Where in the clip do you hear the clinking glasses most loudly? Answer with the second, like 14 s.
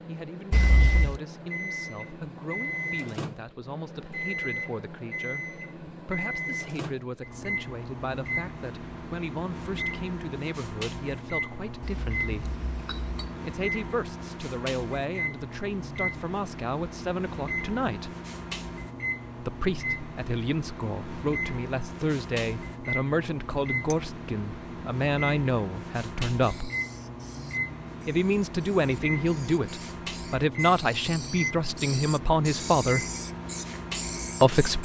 1 s.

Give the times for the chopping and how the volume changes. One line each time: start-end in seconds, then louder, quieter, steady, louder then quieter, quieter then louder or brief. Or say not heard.
not heard.